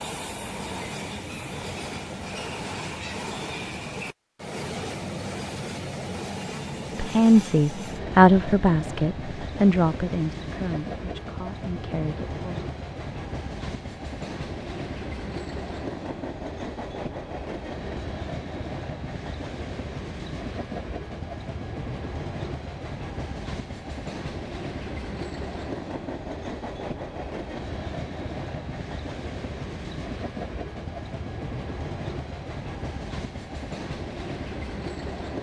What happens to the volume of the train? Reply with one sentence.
The loudness of the train stays about the same.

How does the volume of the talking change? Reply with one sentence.
The volume of the talking goes down.